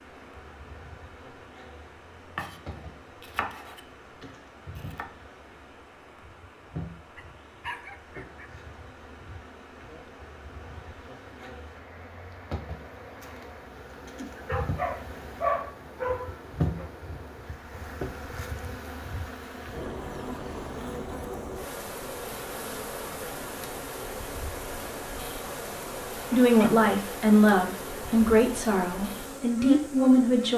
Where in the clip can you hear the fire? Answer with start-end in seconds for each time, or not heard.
not heard.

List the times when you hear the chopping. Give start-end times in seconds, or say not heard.
2.4-5.0.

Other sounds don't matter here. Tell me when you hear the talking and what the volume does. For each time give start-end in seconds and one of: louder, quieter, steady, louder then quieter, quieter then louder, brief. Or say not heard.
26.3-30.5 quieter then louder.